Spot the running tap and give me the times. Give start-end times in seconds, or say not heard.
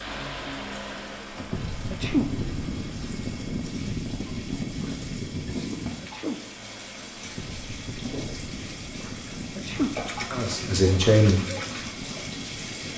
0.0-12.9.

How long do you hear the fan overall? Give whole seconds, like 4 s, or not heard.
13 s.